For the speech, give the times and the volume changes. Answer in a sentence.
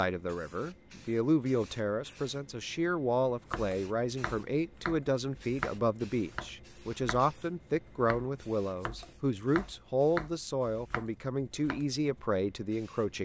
The speech can be heard from 0.0 to 13.2 s, at a steady volume.